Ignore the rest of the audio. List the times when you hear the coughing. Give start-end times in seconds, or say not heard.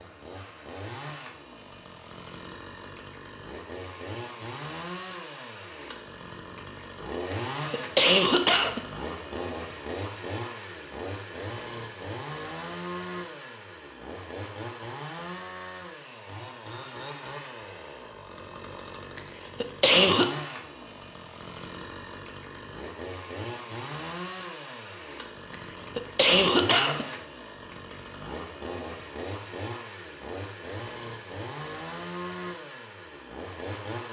7.3-8.8, 19.1-20.3, 25.5-27.1.